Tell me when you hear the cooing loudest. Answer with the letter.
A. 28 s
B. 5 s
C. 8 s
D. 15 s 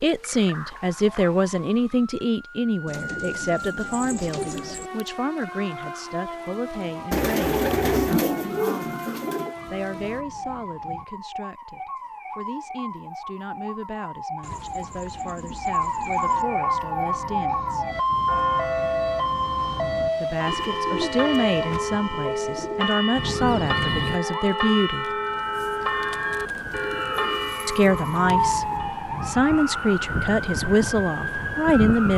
C.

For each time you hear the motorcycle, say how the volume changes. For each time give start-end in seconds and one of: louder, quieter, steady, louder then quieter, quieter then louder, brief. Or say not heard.
not heard.